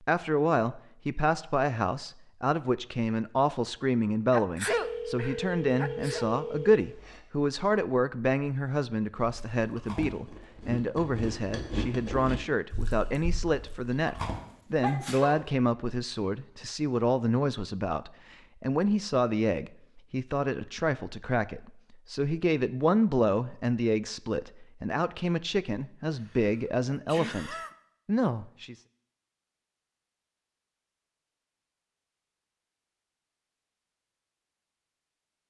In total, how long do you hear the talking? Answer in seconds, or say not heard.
29 s.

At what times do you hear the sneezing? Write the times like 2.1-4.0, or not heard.
4.3-6.2, 14.3-15.5, 26.1-27.7.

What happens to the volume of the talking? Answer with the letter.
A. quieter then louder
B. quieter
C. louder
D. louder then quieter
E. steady
E.